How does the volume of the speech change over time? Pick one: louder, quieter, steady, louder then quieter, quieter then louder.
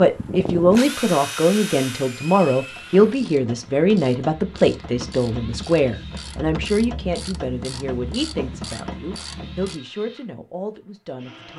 quieter.